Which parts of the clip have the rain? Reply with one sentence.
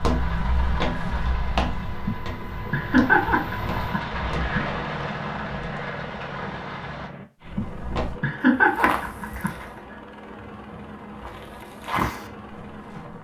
The rain can be heard from 0.0 to 7.1 s.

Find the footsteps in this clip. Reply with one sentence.
You can hear the footsteps from 0.0 to 4.5 s, from 7.5 to 9.7 s and from 11.2 to 13.1 s.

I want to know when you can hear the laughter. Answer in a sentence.
The laughter can be heard from 2.0 to 4.7 s and from 7.5 to 9.5 s.